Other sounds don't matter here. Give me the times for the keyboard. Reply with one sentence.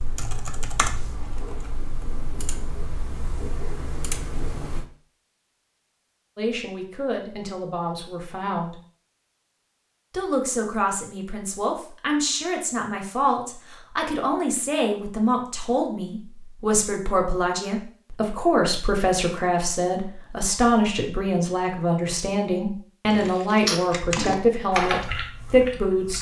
You can hear the keyboard from 0.0 to 4.8 s and from 23.1 to 26.1 s.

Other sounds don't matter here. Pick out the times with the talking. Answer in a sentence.
The talking can be heard from 6.3 to 8.8 s and from 10.1 to 26.1 s.